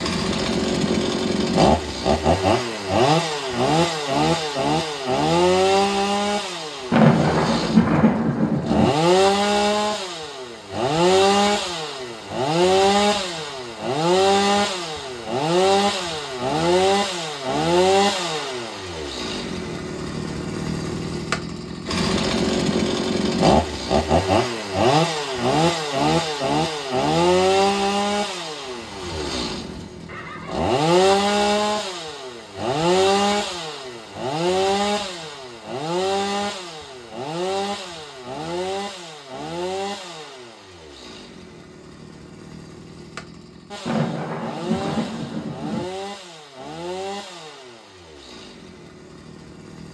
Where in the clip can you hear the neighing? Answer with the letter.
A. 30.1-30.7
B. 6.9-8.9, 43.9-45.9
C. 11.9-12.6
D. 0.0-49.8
A.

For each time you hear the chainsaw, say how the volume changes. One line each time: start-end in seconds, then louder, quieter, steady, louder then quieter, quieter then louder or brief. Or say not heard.
0.0-49.8 quieter.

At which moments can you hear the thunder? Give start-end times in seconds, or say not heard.
6.9-8.9, 43.9-45.9.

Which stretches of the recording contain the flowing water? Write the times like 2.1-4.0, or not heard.
not heard.